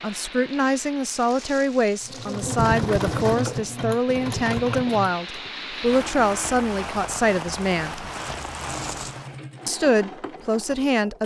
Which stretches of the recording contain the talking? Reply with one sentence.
The talking can be heard from 0.0 to 8.1 s and from 9.7 to 11.2 s.